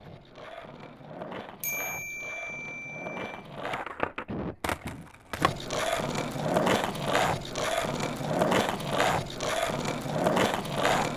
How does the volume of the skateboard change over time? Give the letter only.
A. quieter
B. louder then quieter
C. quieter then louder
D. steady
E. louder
E.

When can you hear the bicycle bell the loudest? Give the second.
2 s.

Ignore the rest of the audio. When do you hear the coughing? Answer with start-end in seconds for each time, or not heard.
4.2-5.1.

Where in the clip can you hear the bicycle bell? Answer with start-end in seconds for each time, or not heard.
1.6-3.5.